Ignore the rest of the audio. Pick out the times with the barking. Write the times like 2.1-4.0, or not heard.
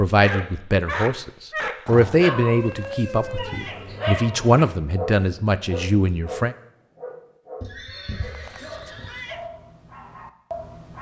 0.1-10.9.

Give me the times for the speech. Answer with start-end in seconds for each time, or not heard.
0.0-6.5.